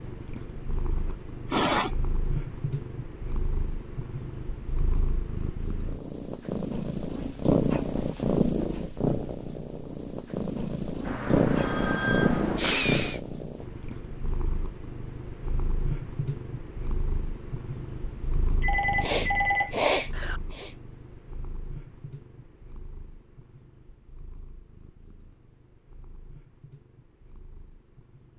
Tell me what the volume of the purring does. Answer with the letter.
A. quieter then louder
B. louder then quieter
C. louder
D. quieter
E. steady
B.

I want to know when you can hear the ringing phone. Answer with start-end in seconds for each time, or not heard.
11.1-12.6, 18.6-20.4.